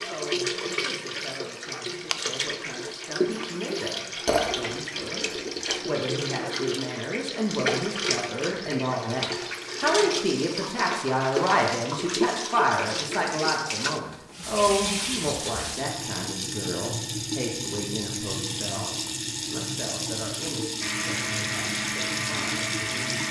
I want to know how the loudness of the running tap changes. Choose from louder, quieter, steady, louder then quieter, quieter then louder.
steady.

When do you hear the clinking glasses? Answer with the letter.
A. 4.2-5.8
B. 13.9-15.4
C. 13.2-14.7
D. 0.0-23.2
A.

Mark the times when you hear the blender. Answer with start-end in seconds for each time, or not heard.
20.8-23.2.